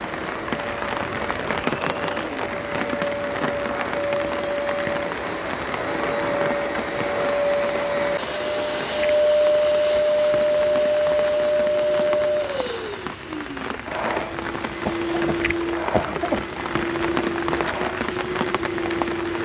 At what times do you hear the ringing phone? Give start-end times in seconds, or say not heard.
not heard.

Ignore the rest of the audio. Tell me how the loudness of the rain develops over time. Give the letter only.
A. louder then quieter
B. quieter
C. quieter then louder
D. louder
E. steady
C.